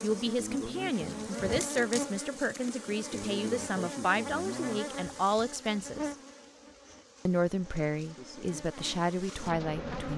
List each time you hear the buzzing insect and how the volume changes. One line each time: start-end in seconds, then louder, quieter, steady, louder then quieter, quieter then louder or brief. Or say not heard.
0.0-10.1 quieter.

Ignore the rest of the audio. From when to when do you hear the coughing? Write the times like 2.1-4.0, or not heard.
not heard.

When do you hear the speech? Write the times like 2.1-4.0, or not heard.
0.0-6.2, 7.2-10.1.